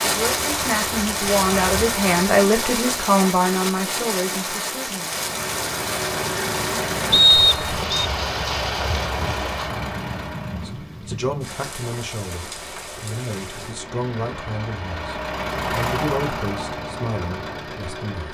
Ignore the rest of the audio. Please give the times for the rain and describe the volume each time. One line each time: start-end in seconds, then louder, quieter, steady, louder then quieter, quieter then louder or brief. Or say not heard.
0.0-13.8 quieter.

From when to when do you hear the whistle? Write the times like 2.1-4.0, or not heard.
7.1-8.1.